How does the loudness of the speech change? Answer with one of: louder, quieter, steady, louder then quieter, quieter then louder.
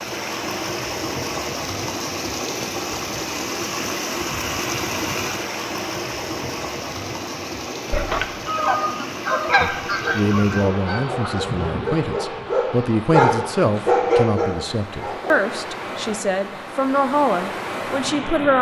steady.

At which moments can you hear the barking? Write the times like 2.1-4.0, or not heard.
9.8-15.4.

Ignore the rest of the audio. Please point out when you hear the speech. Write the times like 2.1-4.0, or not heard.
9.6-18.5.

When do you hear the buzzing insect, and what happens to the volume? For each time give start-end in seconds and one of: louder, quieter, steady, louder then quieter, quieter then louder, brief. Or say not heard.
not heard.